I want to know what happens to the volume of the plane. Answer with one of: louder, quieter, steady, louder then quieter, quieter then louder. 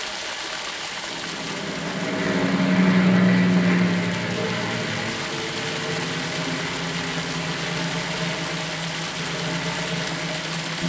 quieter.